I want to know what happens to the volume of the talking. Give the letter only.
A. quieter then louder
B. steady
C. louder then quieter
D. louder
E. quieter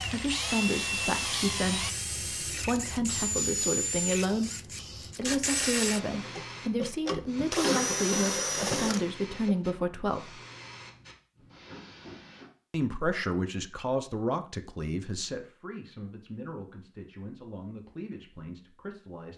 E.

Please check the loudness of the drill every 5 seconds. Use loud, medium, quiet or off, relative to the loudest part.
loud, loud, off, off.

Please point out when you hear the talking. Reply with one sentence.
You can hear the talking from 0.1 to 10.3 s and from 12.7 to 19.3 s.